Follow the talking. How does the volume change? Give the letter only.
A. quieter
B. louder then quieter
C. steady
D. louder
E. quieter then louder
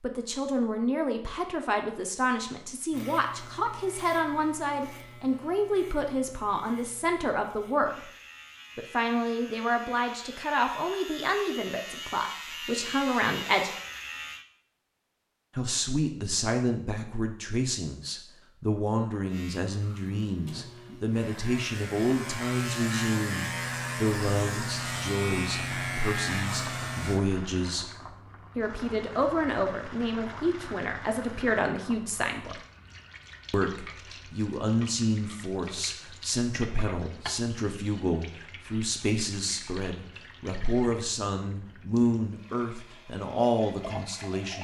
C.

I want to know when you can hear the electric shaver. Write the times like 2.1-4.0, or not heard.
2.9-14.4, 19.2-27.2.